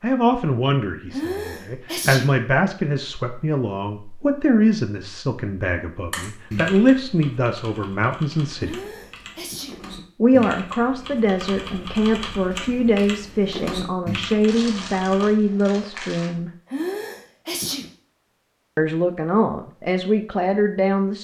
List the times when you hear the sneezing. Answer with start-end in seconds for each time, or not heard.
1.1-2.3, 8.6-9.8, 16.6-17.9.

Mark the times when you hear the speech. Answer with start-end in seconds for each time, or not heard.
0.0-8.8, 10.2-16.5, 18.8-21.2.